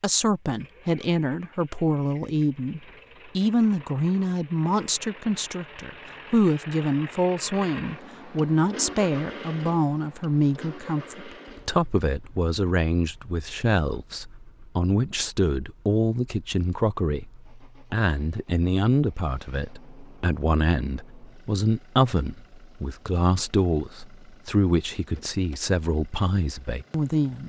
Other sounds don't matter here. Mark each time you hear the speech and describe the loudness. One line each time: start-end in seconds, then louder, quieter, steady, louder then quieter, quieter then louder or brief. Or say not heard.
0.0-27.4 steady.